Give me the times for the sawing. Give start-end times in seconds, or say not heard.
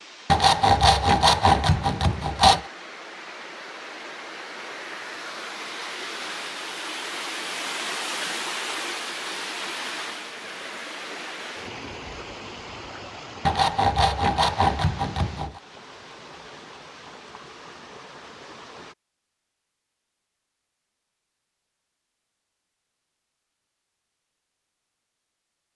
0.3-2.6, 13.4-15.6.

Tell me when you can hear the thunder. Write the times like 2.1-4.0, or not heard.
not heard.